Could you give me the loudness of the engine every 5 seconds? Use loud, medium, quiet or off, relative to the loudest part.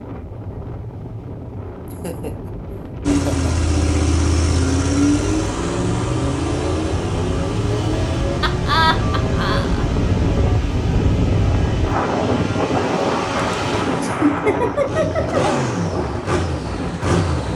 loud, loud, medium, loud.